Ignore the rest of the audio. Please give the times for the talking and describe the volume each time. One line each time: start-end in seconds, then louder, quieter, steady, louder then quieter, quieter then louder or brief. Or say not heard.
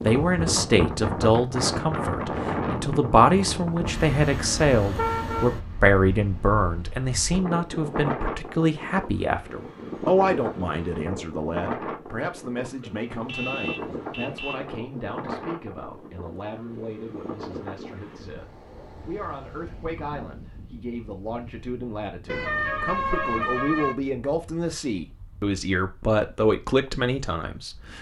0.0-27.9 quieter then louder.